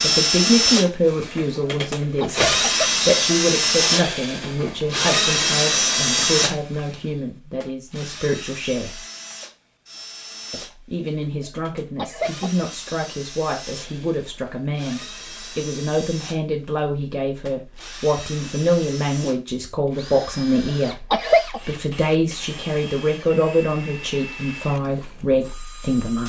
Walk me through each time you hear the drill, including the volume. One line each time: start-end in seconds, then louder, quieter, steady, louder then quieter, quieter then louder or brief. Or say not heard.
0.0-26.2 quieter.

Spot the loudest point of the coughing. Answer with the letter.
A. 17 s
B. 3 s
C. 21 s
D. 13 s
C.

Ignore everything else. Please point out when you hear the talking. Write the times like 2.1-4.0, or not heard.
0.0-9.0, 10.5-26.2.